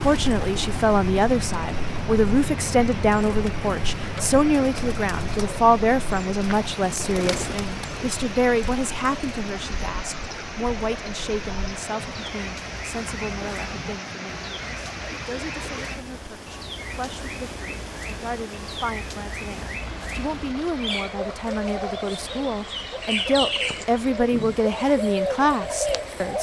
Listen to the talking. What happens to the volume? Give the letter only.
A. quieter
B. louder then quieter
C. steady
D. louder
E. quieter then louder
E.